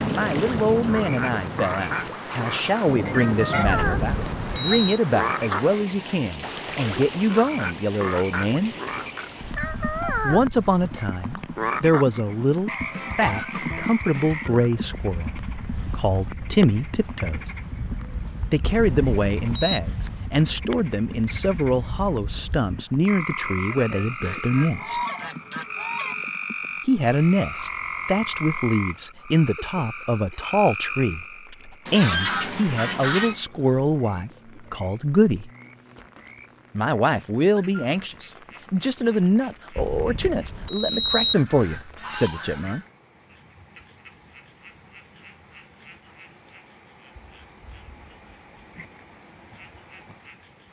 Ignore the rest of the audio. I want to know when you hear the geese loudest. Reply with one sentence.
The volume of the geese peaks at 32 seconds.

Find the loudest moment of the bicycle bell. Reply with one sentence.
The loudest moment of the bicycle bell is at 41 seconds.